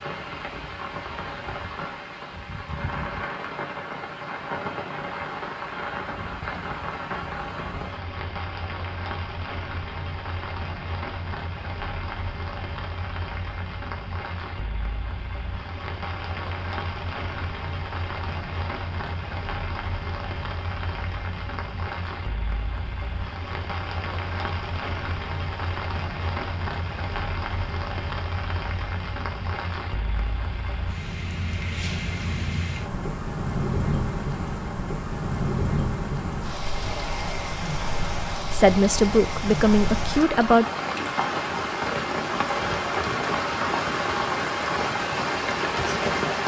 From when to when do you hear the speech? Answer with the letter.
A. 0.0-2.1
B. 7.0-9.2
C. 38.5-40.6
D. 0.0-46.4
C.